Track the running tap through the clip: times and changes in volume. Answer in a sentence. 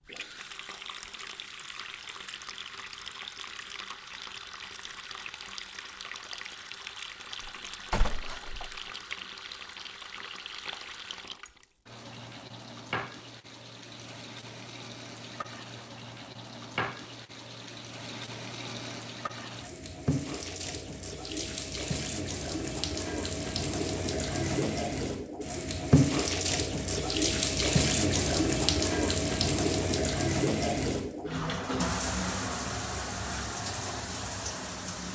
The running tap can be heard from 0.0 to 35.0 s, getting louder.